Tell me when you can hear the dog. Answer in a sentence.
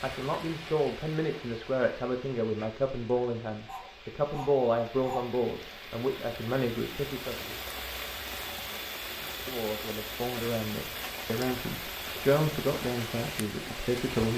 The dog can be heard from 3.6 to 5.3 s.